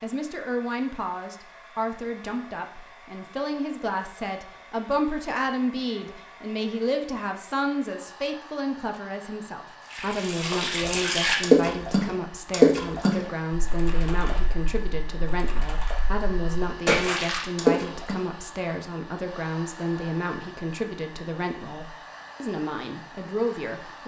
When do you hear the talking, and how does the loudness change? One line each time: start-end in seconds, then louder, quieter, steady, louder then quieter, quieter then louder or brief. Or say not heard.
0.0-24.0 steady.